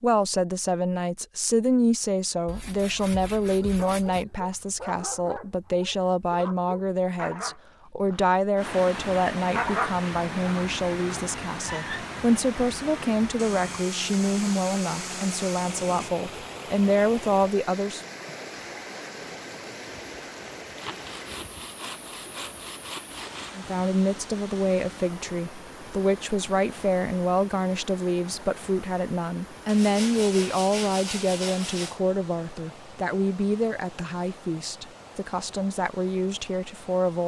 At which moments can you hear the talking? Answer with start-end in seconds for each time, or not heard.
0.0-18.0, 23.6-37.2.